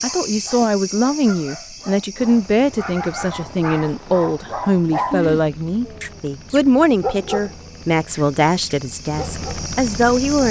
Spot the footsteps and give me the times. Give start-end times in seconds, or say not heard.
not heard.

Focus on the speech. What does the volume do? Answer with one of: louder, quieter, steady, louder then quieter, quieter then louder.
steady.